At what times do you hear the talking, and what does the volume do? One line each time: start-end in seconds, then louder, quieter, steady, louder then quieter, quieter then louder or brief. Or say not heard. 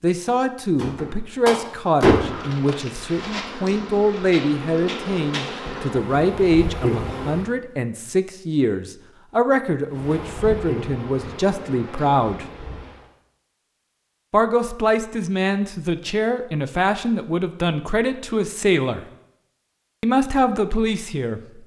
0.0-12.4 steady
14.3-19.1 steady
20.0-21.4 brief.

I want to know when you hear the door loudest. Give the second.
2 s.